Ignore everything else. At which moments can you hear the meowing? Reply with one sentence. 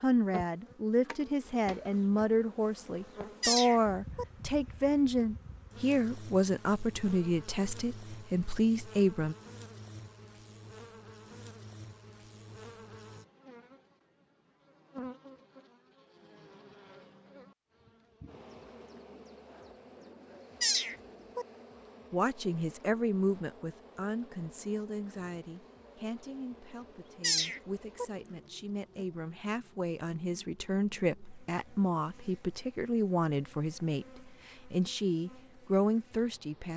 You can hear the meowing from 3.4 to 4.2 s, from 20.6 to 21.4 s and from 27.2 to 28.1 s.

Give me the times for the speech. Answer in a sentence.
You can hear the speech from 0.0 to 9.3 s and from 22.1 to 36.7 s.